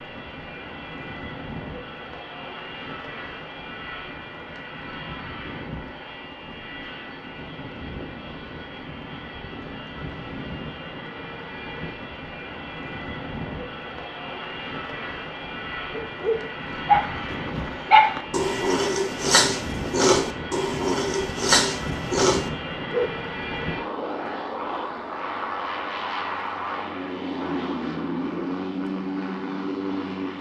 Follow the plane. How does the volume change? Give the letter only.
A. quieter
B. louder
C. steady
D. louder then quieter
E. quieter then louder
B.